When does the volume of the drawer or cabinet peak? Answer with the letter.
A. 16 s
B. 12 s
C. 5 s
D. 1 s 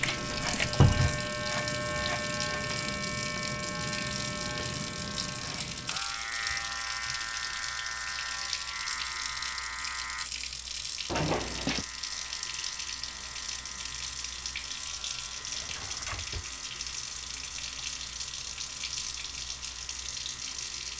D.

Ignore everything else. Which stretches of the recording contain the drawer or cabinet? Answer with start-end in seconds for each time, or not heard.
0.8-1.2, 11.1-11.8, 15.4-16.6.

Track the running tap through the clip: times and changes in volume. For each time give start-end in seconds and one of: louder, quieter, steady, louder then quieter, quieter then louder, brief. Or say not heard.
0.0-20.9 steady.